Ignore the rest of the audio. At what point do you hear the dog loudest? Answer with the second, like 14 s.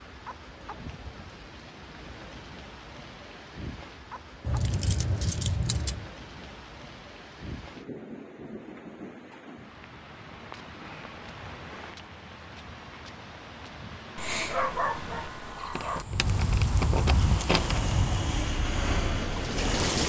15 s.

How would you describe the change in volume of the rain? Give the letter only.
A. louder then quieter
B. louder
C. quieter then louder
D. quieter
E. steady
B.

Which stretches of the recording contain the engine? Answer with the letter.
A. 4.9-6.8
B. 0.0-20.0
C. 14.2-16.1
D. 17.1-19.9
D.